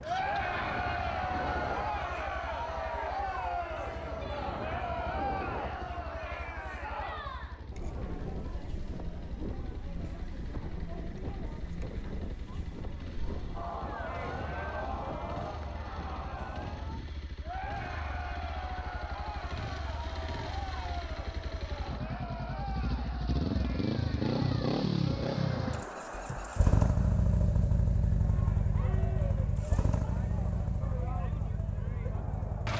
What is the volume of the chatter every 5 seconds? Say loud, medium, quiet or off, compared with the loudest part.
loud, medium, medium, medium, medium, medium, quiet.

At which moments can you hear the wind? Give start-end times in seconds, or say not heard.
0.0-17.3.